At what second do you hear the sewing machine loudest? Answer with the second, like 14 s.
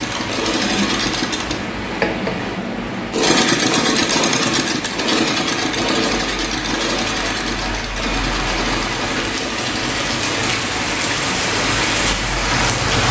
4 s.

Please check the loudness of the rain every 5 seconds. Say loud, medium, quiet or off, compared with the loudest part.
medium, medium, loud.